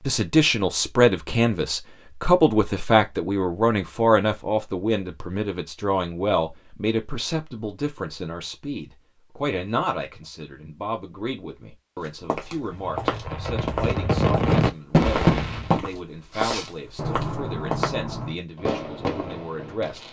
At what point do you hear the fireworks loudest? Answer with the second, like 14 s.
15 s.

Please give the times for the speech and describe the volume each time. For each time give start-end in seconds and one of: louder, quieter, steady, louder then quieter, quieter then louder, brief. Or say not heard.
0.1-20.0 quieter.